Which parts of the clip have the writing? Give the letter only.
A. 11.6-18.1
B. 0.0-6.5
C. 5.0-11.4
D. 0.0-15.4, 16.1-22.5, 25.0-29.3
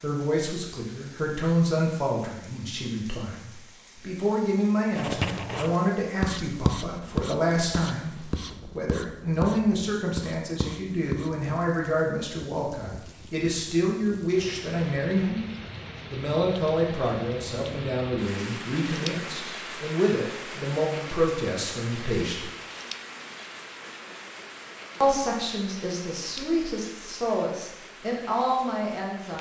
C.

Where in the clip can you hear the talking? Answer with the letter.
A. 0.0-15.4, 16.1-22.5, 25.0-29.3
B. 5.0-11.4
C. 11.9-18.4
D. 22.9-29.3
A.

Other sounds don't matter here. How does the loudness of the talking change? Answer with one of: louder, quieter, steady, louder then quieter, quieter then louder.
steady.